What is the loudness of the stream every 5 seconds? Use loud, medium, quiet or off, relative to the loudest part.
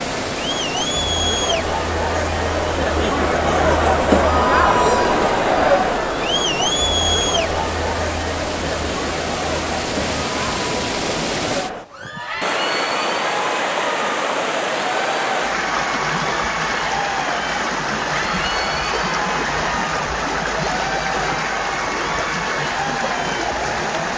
medium, medium, loud, loud, loud.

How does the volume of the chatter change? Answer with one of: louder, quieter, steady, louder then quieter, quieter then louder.
quieter.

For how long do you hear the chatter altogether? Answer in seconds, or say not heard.
24 s.